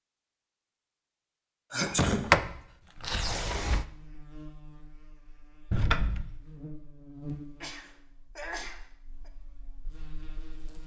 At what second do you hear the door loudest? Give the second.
2 s.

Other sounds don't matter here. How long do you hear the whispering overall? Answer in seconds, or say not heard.
not heard.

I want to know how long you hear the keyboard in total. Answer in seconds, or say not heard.
not heard.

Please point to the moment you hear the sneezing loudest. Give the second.
2 s.